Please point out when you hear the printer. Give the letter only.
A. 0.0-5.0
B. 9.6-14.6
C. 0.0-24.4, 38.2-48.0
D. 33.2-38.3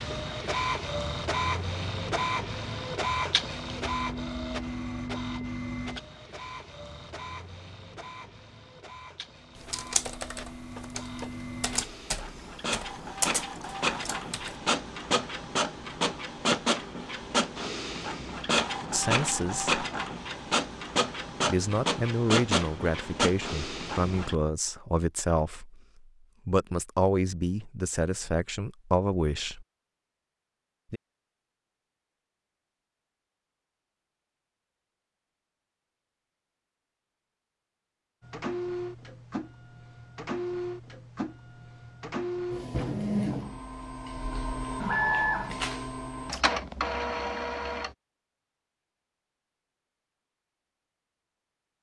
C.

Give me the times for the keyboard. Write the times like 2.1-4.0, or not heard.
9.6-14.6.